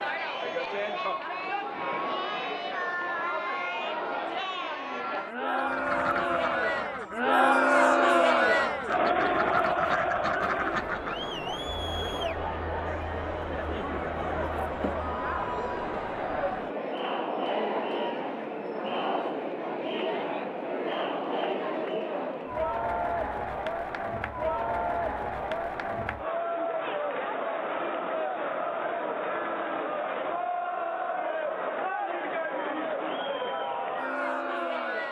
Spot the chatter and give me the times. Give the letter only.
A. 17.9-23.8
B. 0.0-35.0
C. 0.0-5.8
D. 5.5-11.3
B.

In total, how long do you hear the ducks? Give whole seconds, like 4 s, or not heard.
6 s.